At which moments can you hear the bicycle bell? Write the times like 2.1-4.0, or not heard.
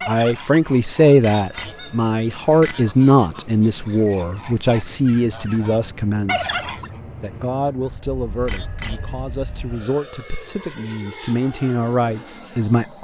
1.2-3.0, 8.4-9.2.